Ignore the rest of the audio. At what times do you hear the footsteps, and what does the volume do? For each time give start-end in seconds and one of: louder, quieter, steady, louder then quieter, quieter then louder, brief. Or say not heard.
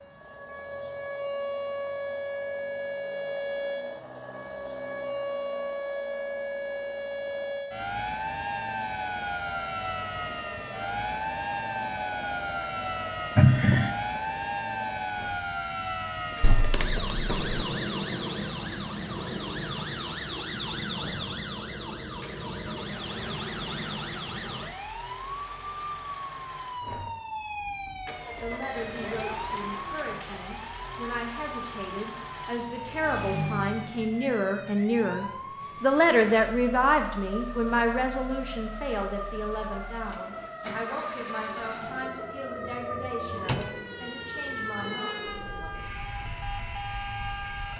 not heard.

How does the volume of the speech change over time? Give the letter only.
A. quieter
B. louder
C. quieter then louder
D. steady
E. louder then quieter
E.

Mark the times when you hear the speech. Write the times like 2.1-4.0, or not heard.
28.4-45.8.